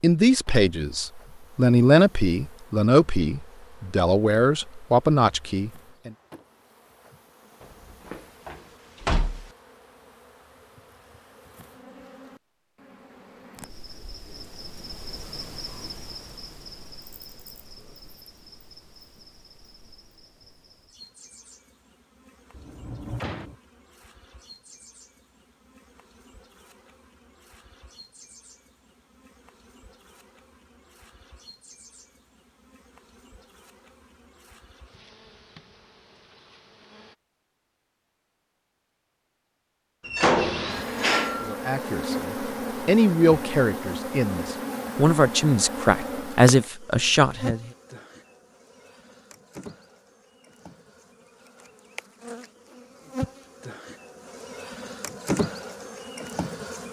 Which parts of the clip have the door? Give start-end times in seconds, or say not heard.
7.6-9.5, 22.5-23.6, 40.0-41.6.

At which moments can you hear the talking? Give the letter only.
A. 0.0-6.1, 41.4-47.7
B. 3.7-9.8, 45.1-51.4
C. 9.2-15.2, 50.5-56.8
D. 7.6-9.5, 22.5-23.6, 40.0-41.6
A.